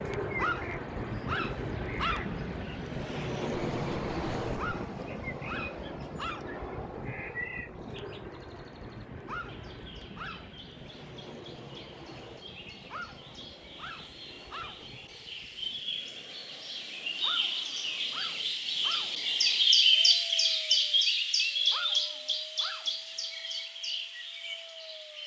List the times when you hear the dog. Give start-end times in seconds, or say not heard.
0.3-2.4, 4.5-6.5, 9.2-10.5, 12.9-14.9, 17.2-19.2, 21.7-22.9.